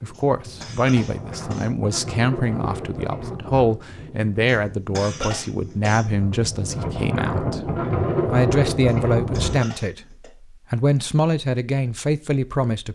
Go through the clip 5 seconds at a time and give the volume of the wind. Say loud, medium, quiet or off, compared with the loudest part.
medium, loud, off.